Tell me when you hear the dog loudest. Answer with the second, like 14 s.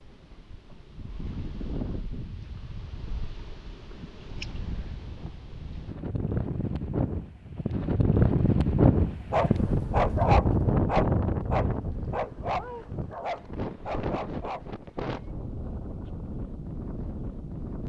10 s.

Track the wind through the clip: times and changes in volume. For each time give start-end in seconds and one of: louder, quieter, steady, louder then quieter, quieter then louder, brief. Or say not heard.
0.0-17.8 louder then quieter.